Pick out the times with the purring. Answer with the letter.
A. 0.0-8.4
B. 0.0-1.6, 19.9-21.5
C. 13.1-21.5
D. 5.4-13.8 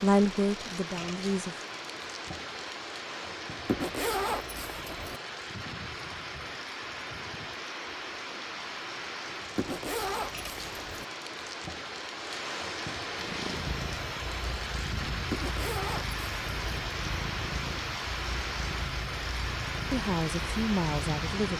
C.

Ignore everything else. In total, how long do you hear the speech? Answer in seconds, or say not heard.
3 s.